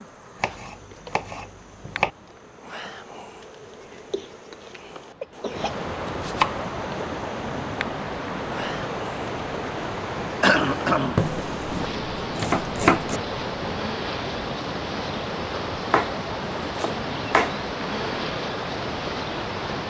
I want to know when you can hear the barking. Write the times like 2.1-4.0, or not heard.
not heard.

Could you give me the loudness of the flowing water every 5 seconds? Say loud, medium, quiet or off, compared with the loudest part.
quiet, loud, loud, loud.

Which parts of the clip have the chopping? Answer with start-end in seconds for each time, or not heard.
0.4-2.1, 6.0-6.7, 11.2-13.2, 15.9-17.6.